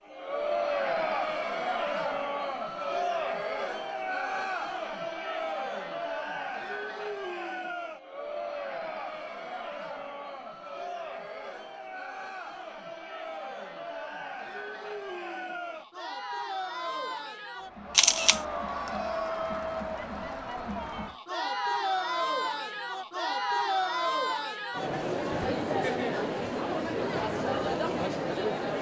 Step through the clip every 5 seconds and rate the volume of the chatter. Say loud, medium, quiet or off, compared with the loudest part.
loud, medium, medium, medium, loud, loud.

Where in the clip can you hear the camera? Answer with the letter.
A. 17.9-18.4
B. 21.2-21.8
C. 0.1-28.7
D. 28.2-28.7
A.